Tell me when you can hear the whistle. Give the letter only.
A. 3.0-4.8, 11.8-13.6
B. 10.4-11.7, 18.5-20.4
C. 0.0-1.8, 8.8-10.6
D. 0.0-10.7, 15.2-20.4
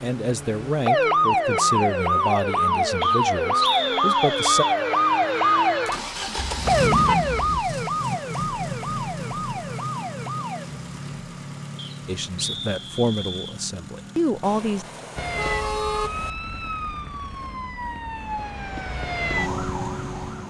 A.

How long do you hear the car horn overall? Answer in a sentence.
The car horn can be heard for 3 seconds in total.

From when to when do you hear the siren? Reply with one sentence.
You can hear the siren from 0.0 to 10.7 s and from 15.2 to 20.4 s.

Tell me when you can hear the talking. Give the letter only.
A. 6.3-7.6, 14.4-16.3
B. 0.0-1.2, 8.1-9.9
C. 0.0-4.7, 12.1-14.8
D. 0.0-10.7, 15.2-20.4
C.